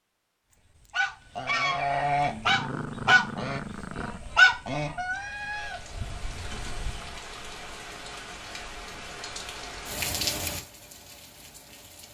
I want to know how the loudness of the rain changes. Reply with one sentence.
The loudness of the rain goes up, then down.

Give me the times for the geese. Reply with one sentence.
You can hear the geese from 0.8 to 7.2 s.